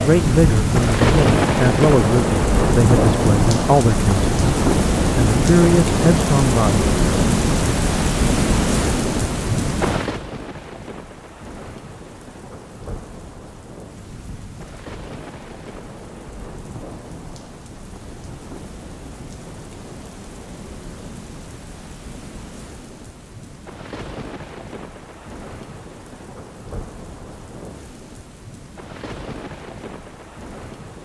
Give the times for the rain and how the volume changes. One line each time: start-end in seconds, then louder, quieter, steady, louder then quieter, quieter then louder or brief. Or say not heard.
0.0-30.9 quieter.